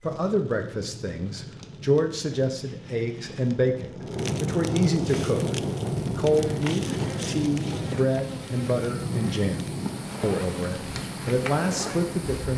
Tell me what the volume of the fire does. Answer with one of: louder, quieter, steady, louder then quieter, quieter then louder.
louder then quieter.